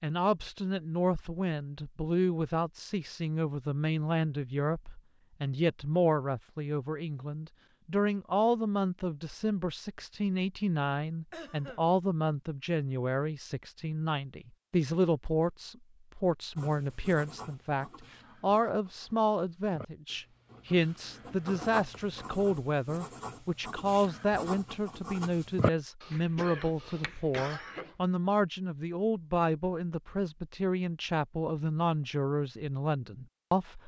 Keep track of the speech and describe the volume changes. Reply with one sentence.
The volume of the speech stays about the same.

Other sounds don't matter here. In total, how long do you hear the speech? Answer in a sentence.
You can hear the speech for 34 seconds altogether.